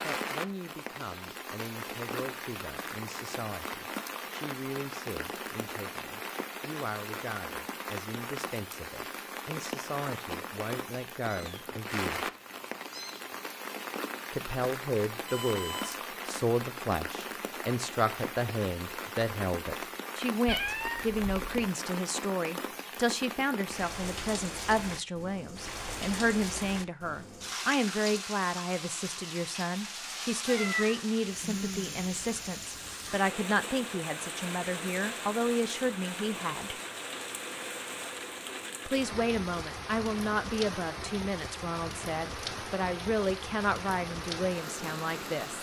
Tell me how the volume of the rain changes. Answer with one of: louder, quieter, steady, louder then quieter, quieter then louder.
steady.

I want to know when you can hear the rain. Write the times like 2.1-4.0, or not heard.
0.0-45.5.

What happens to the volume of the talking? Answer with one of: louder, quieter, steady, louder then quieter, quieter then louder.
louder.